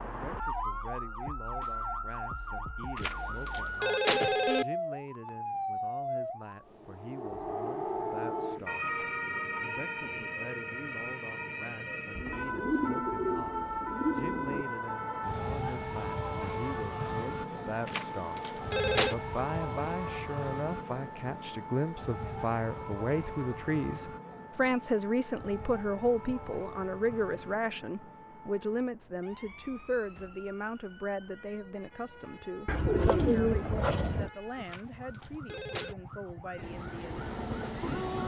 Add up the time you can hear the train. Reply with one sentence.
The train can be heard for 2 seconds in total.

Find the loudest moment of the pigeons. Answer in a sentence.
The volume of the pigeons peaks at 33 seconds.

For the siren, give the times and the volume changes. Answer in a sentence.
The siren can be heard from 0.0 to 38.2 s, getting quieter.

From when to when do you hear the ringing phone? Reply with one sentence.
You can hear the ringing phone from 3.0 to 4.7 s, from 17.9 to 19.1 s and from 34.6 to 36.0 s.